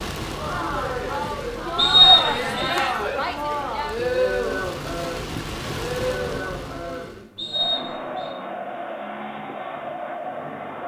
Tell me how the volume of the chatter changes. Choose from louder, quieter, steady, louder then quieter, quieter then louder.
quieter.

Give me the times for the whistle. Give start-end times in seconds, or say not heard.
1.8-2.8, 7.3-8.3.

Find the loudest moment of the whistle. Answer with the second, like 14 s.
2 s.